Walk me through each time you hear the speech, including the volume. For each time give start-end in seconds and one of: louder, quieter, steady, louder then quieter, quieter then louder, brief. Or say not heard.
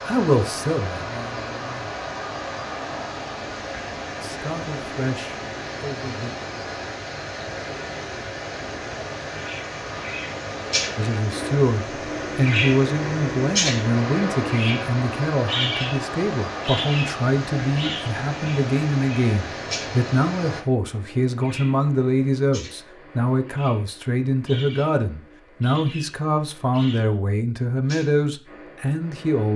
0.1-1.9 brief
4.2-6.3 brief
10.9-29.5 steady.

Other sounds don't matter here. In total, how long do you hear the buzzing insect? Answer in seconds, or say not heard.
not heard.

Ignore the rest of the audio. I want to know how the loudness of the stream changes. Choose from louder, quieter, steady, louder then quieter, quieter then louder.
steady.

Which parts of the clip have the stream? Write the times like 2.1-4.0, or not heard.
0.0-20.6.